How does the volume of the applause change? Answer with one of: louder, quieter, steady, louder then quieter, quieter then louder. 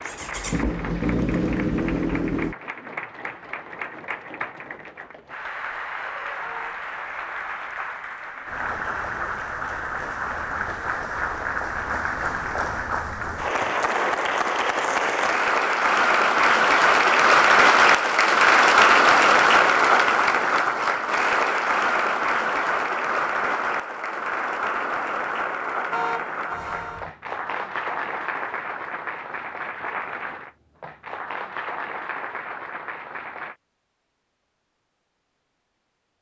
louder then quieter.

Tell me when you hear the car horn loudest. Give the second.
26 s.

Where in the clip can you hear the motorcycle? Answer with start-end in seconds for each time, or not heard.
0.0-2.5.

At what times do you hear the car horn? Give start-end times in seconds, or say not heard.
6.4-6.8, 25.9-27.1.